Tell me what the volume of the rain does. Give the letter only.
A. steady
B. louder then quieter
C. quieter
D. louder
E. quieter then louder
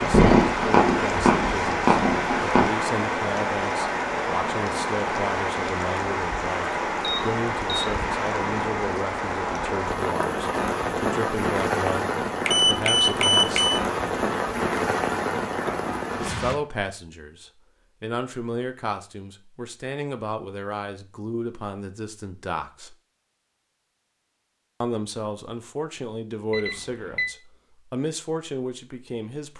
A.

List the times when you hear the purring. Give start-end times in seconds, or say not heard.
0.0-2.6.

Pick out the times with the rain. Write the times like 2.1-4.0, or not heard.
0.0-16.6.